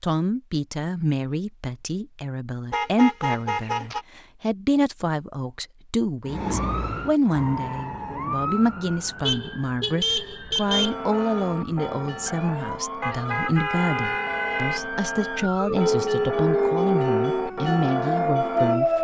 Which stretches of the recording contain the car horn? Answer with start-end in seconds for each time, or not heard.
2.7-4.0, 9.2-10.9, 13.0-14.8.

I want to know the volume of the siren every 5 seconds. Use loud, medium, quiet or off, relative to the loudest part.
off, medium, quiet, loud.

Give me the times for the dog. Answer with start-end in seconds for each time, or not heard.
not heard.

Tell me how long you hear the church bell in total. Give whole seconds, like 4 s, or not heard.
8 s.